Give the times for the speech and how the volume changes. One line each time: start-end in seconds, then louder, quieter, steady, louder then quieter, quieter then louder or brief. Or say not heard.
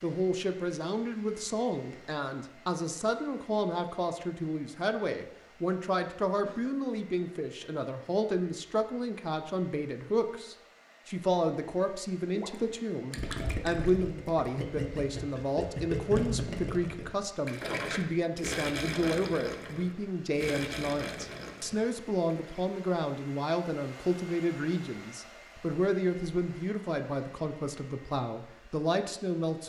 0.0-29.6 steady.